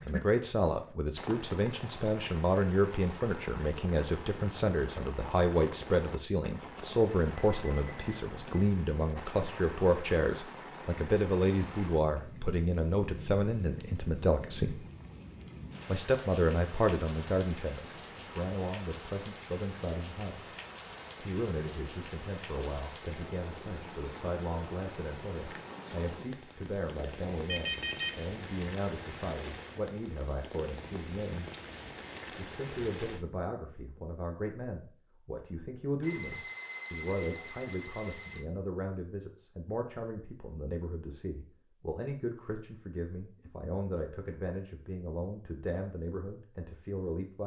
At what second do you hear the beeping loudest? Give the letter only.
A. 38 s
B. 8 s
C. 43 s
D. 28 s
D.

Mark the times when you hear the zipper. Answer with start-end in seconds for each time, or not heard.
not heard.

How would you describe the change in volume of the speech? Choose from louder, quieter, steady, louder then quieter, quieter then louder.
quieter.